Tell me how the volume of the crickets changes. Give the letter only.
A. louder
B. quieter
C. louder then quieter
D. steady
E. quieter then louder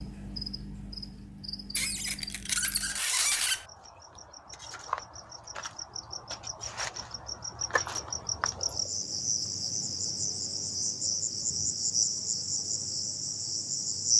A.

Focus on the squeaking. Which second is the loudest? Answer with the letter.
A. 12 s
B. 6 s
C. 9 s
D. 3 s
D.